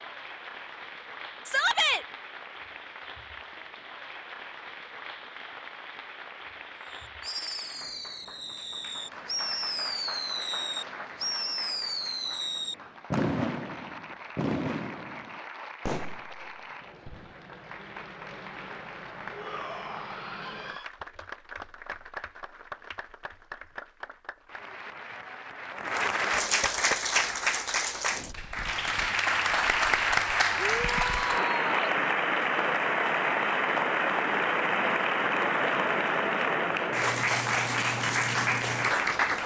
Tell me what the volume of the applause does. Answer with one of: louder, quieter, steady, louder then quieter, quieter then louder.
louder.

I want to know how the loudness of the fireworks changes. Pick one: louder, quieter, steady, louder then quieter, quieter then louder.
louder then quieter.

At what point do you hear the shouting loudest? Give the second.
2 s.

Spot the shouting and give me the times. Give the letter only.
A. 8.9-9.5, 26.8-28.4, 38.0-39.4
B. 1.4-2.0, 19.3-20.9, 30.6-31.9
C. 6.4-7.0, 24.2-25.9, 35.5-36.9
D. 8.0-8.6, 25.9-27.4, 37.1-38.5
B.